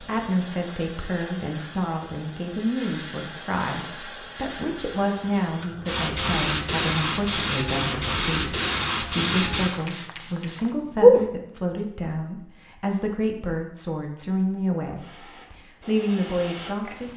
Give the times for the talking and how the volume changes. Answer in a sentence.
The talking can be heard from 0.0 to 17.1 s, at a steady volume.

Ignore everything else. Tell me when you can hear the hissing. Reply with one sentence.
The hissing can be heard from 0.0 to 11.2 s and from 14.9 to 17.1 s.